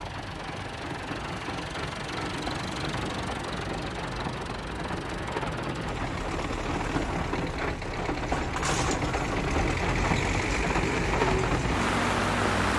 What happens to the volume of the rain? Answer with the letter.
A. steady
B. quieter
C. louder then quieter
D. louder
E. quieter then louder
D.